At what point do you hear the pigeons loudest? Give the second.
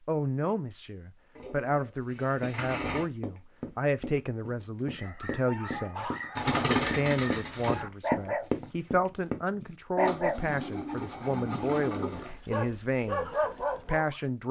7 s.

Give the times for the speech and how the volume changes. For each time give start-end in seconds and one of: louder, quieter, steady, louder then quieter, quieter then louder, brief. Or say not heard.
0.1-14.4 steady.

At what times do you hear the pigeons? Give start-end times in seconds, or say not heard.
1.4-3.0, 6.3-7.8, 9.9-12.3.